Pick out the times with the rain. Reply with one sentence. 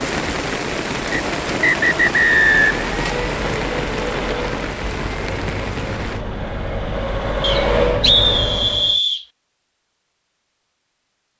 The rain can be heard from 0.0 to 6.2 s.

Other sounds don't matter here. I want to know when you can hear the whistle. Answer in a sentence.
The whistle can be heard from 1.1 to 2.9 s and from 7.4 to 9.2 s.